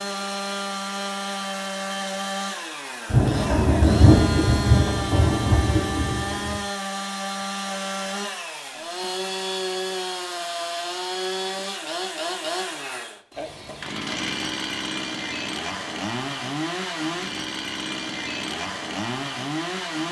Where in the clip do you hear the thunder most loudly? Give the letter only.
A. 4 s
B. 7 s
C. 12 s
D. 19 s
A.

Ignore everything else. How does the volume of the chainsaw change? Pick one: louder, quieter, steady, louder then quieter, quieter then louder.
steady.